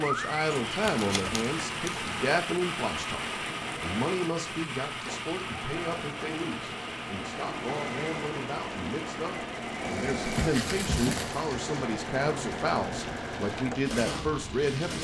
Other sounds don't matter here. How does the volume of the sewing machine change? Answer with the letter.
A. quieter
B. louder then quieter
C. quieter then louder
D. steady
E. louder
E.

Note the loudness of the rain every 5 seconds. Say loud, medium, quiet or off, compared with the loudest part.
loud, medium, medium.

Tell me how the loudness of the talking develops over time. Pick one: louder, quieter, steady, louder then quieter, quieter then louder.
quieter then louder.